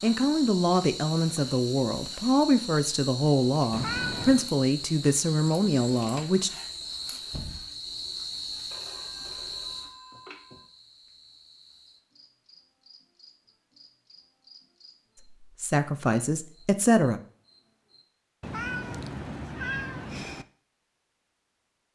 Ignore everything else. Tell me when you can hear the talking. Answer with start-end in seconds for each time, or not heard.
0.0-6.5, 15.4-17.2.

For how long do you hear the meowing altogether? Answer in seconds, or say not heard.
3 s.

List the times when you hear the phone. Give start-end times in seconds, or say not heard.
8.7-10.7.